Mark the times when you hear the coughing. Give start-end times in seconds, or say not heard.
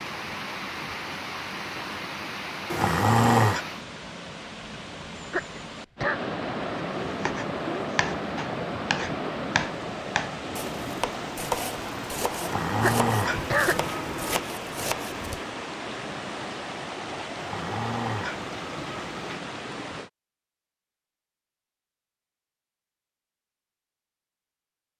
5.3-6.2, 12.8-13.8.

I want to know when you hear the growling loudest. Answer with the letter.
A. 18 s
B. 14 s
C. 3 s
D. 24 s
C.